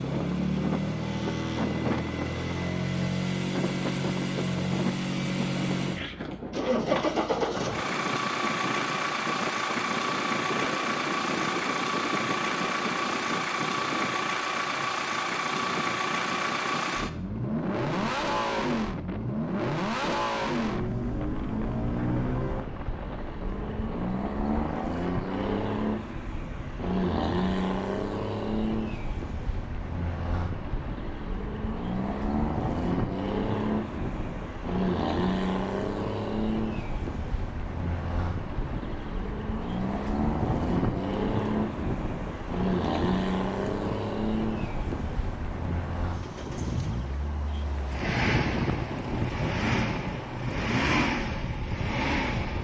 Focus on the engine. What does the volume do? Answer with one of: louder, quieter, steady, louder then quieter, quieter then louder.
steady.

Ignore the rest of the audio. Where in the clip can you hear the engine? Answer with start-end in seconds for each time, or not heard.
0.0-52.5.